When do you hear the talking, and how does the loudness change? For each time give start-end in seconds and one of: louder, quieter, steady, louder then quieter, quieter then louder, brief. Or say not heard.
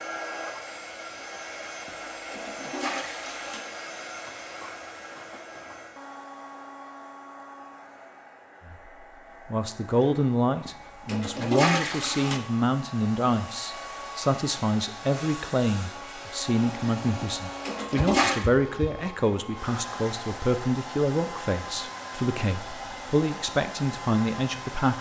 8.7-24.9 steady.